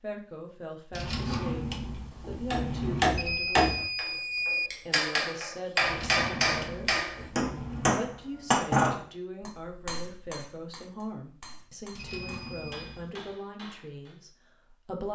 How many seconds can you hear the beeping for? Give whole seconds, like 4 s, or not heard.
3 s.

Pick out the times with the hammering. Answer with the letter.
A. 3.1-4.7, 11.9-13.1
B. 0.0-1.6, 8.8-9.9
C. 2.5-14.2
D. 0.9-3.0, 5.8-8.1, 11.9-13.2
C.